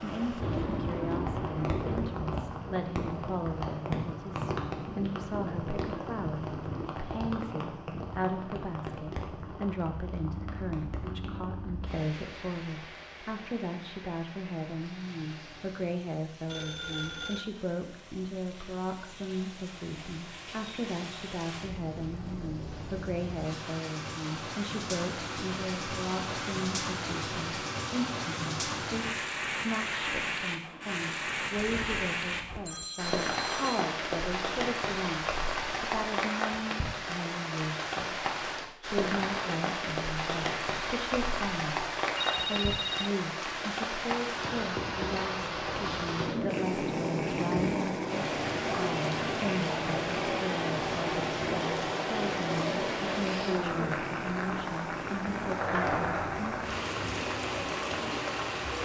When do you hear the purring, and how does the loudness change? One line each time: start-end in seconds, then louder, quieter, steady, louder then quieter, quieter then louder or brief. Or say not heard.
46.5-58.8 quieter.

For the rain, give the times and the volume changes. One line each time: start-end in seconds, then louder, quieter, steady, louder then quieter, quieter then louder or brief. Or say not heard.
0.0-58.8 quieter then louder.